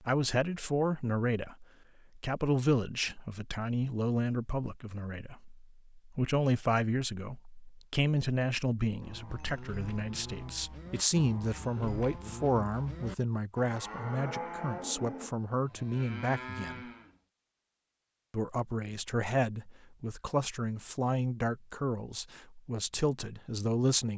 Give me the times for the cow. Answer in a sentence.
You can hear the cow from 9.0 to 17.2 s.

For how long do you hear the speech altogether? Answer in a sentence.
You can hear the speech for 23 seconds altogether.